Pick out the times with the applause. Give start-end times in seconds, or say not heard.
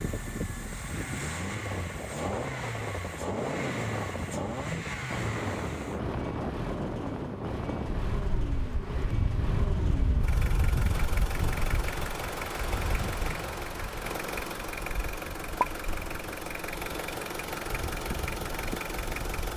not heard.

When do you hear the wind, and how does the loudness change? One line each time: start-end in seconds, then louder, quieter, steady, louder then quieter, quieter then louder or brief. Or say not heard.
0.0-19.5 quieter.